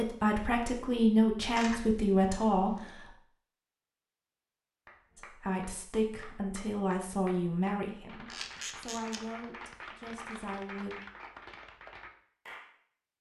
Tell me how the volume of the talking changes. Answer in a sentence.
The loudness of the talking goes down.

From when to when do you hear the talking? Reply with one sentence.
The talking can be heard from 0.0 to 3.0 s and from 5.2 to 10.9 s.